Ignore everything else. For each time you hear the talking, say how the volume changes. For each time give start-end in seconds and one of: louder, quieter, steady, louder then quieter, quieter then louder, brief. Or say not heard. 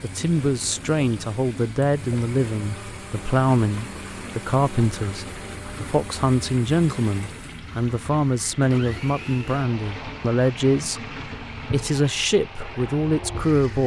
0.0-13.8 steady.